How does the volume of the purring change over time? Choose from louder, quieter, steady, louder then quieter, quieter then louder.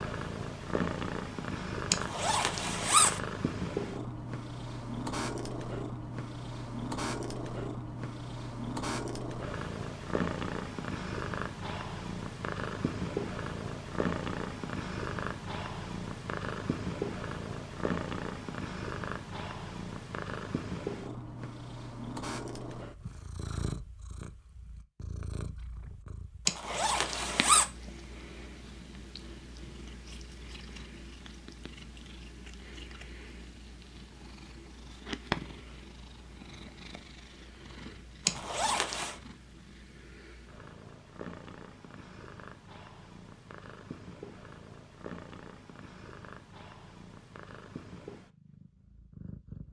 quieter.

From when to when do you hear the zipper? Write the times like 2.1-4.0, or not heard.
1.9-3.2, 26.4-27.6, 38.2-39.1.